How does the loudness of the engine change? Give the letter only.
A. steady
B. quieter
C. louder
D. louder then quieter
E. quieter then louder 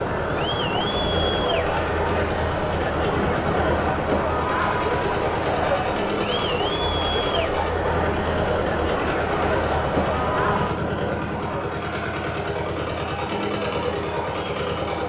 A.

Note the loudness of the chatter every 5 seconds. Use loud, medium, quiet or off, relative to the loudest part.
loud, loud, medium.